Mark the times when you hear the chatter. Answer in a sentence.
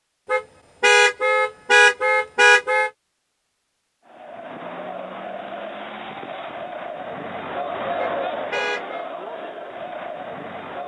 The chatter can be heard from 4.0 to 10.8 s.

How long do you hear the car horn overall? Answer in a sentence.
The car horn can be heard for 4 seconds in total.